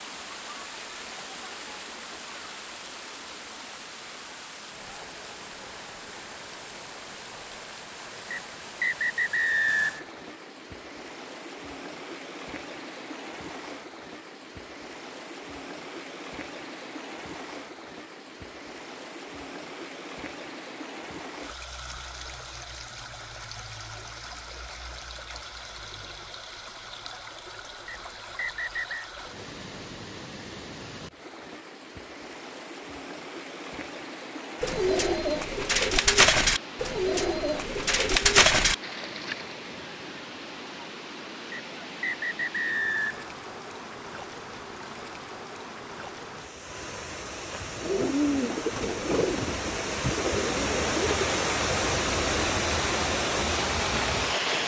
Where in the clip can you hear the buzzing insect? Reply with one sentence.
The buzzing insect can't be heard in this clip.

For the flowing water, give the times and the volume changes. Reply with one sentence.
The flowing water can be heard from 0.0 to 54.6 s, getting louder.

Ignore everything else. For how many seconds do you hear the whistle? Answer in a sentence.
You can hear the whistle for 5 seconds altogether.